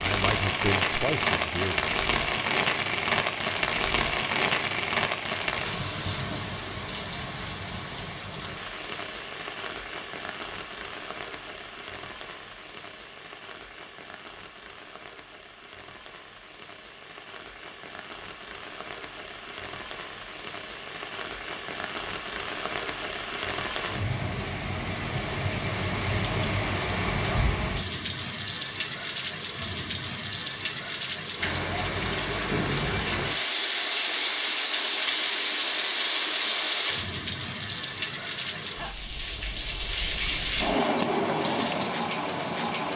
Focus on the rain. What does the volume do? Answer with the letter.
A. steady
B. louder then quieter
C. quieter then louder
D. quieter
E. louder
C.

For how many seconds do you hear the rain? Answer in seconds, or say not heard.
43 s.